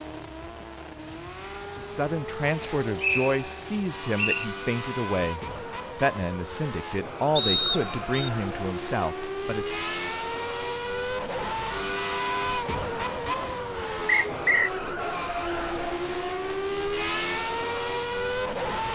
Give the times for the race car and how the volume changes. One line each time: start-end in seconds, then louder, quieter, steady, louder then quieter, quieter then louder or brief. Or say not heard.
0.0-18.8 louder.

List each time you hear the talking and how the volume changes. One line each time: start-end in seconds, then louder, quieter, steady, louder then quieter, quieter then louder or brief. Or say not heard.
1.6-9.8 steady.